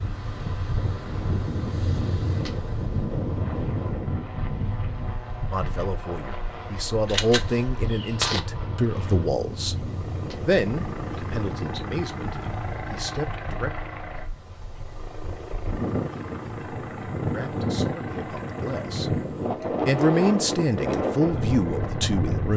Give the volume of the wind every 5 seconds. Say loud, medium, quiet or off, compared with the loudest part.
loud, medium, medium, loud, loud.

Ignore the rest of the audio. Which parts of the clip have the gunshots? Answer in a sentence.
The gunshots can be heard from 7.0 to 8.4 s.